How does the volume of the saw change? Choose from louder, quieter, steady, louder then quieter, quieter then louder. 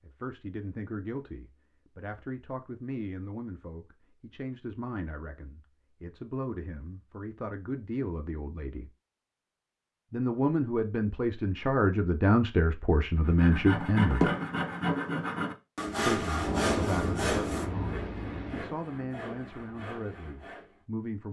quieter.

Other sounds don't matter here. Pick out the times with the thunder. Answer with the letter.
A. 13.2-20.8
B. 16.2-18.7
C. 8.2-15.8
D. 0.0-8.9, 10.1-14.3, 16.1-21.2
B.